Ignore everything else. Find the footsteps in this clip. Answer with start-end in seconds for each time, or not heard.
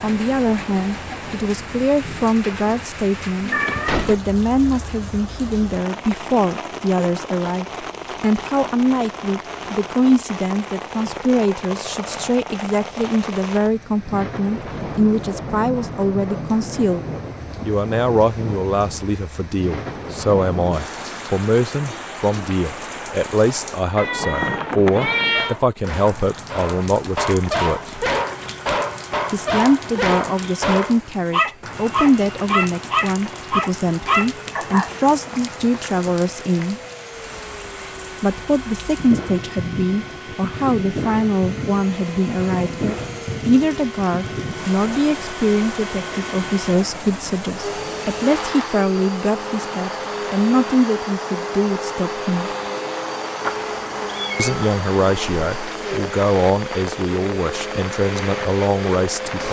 not heard.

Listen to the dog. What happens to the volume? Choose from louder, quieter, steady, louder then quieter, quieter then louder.
louder.